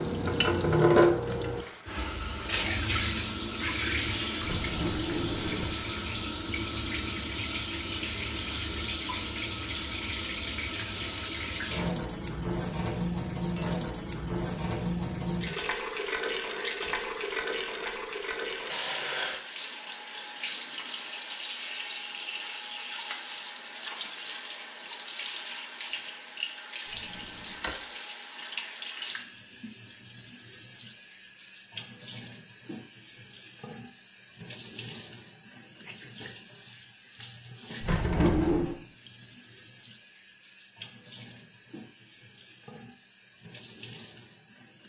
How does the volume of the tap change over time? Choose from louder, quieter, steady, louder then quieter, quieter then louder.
quieter.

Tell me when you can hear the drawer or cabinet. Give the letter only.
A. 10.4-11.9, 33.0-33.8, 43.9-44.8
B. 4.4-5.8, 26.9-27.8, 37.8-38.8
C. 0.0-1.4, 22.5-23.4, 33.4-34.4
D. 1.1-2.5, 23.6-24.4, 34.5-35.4
B.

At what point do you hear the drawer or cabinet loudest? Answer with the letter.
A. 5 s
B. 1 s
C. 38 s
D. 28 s
C.